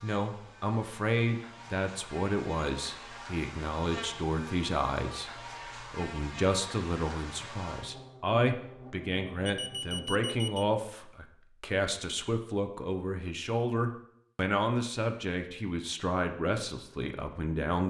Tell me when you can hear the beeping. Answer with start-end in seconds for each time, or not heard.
9.4-10.7.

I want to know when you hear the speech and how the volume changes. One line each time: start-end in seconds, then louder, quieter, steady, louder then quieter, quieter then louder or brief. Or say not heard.
0.0-17.8 steady.